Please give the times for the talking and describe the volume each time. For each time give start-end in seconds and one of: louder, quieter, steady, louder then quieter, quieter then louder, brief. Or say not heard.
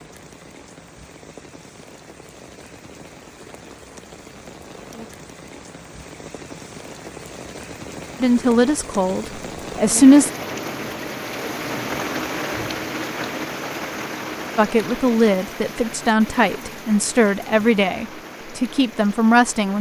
8.2-10.3 brief
14.6-19.7 steady.